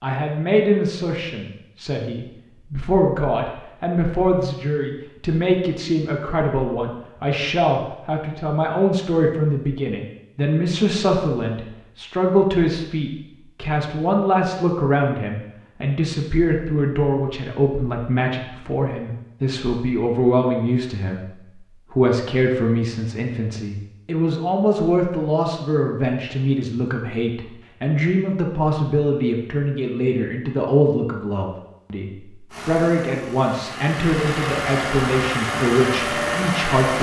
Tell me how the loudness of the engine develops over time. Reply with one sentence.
The volume of the engine goes up.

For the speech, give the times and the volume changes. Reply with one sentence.
You can hear the speech from 0.0 to 36.9 s, at a steady volume.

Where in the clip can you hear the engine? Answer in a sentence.
You can hear the engine from 32.5 to 36.9 s.